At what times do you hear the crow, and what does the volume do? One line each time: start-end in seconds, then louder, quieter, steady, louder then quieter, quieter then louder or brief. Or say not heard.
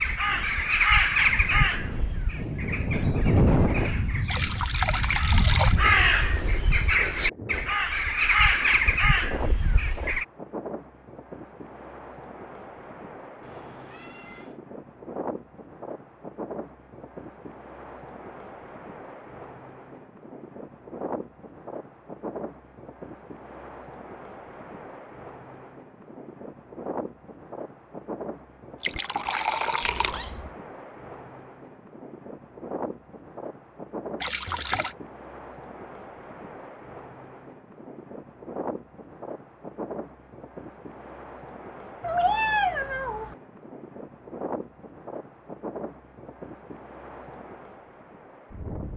0.0-10.2 quieter then louder.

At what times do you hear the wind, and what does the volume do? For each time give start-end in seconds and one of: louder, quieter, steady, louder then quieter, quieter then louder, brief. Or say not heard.
0.0-48.9 quieter.